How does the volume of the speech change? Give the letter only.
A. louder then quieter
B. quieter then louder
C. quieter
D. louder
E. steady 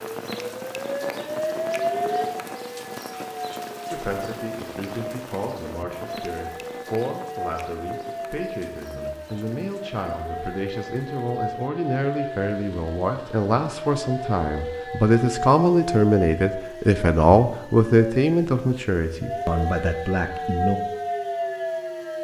D.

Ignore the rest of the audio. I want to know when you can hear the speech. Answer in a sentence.
The speech can be heard from 3.9 to 20.8 s.